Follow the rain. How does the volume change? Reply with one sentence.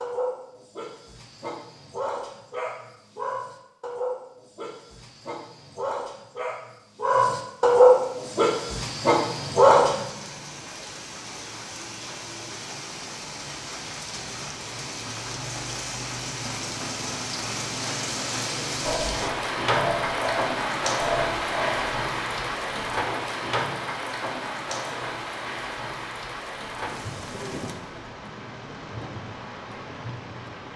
The loudness of the rain goes up, then down.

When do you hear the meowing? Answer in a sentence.
You can't hear the meowing here.